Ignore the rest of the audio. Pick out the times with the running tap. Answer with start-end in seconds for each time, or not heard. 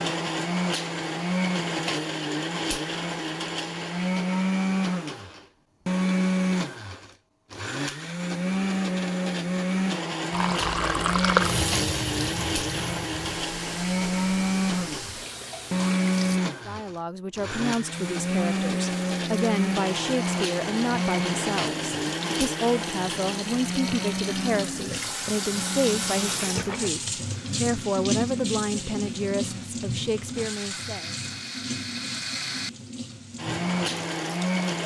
10.3-16.4, 17.9-34.8.